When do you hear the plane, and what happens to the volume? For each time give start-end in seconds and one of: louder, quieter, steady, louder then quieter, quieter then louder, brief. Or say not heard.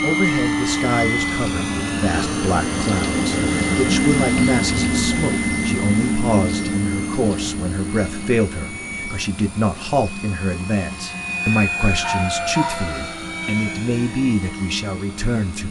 0.0-15.6 quieter.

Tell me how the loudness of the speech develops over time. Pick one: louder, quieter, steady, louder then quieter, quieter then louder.
steady.